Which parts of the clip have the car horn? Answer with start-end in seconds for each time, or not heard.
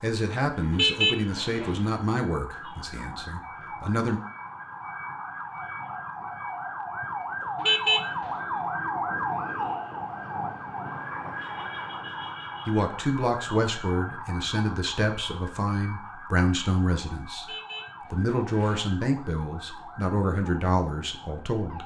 0.7-1.8, 7.6-8.3, 17.4-18.8.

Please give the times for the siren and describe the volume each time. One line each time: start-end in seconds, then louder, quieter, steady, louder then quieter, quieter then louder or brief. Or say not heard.
0.0-21.8 louder then quieter.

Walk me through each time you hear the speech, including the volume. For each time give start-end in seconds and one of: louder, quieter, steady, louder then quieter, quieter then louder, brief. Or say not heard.
0.0-4.2 quieter
12.7-21.8 steady.